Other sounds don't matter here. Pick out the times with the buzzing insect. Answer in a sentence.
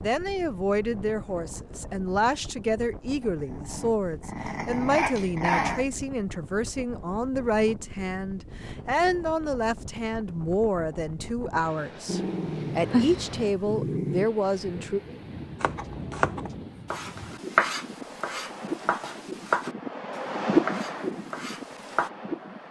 The buzzing insect can't be heard in this clip.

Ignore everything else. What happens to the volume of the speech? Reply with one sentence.
The volume of the speech stays about the same.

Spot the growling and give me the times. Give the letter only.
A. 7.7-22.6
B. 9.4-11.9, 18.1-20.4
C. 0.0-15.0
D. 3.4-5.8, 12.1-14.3
D.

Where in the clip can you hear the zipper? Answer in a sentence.
The zipper can't be heard in this clip.